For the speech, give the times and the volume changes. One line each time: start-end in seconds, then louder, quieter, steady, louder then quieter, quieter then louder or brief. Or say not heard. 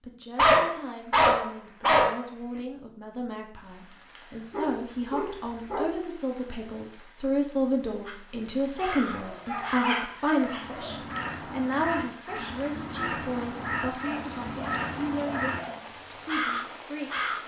0.0-17.2 louder then quieter.